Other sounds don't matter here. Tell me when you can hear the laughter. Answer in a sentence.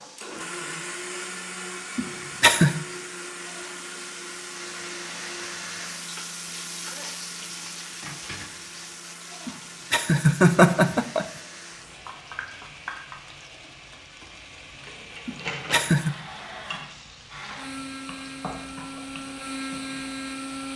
You can hear the laughter from 1.9 to 2.8 s, from 9.4 to 11.2 s and from 15.2 to 16.1 s.